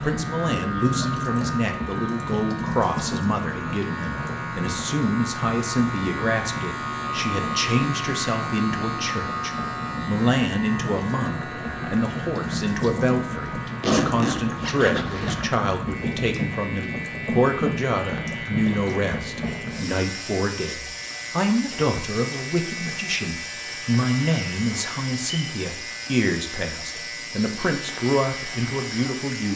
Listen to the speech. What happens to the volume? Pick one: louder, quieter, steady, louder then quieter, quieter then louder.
steady.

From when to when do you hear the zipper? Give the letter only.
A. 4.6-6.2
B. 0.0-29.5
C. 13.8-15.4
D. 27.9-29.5
C.